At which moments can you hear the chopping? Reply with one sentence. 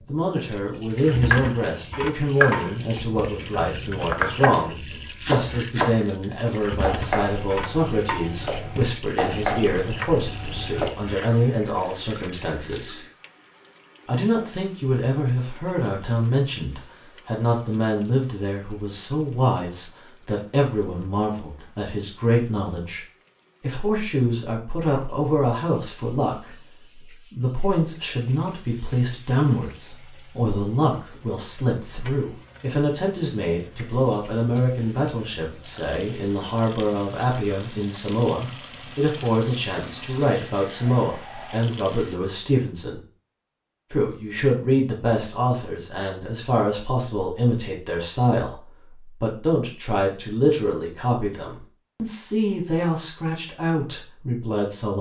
You can hear the chopping from 1.2 to 10.9 s.